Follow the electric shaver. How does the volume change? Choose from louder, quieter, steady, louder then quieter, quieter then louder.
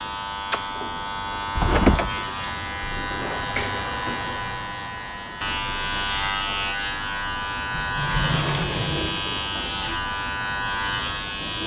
steady.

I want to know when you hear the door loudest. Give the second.
2 s.